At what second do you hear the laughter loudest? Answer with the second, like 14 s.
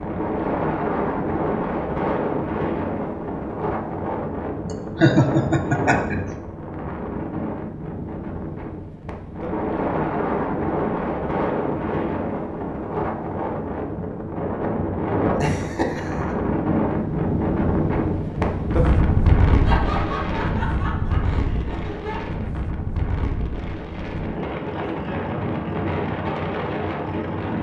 5 s.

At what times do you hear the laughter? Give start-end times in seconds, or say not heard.
5.0-6.2, 15.3-16.4, 19.6-22.2.